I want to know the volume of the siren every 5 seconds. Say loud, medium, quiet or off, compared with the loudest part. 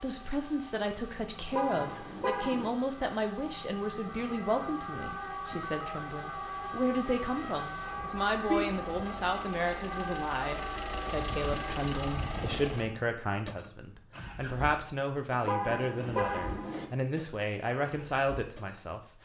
medium, loud, loud, off.